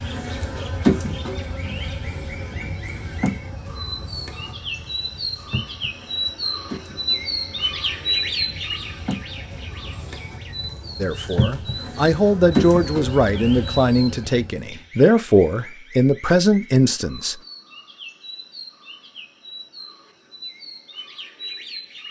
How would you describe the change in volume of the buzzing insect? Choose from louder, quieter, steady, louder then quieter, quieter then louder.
quieter then louder.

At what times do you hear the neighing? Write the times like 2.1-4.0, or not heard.
not heard.